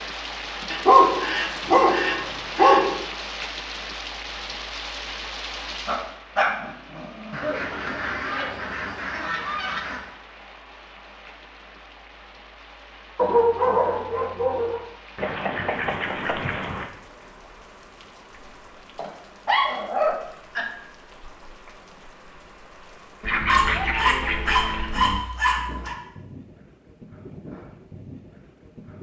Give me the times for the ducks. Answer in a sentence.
The ducks can be heard from 0.7 to 2.9 s, from 7.3 to 10.1 s, from 15.2 to 16.9 s and from 23.2 to 25.2 s.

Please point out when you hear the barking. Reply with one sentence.
You can hear the barking from 0.8 to 3.0 s, from 5.8 to 7.3 s, from 13.2 to 14.8 s, from 18.9 to 20.6 s and from 23.4 to 25.9 s.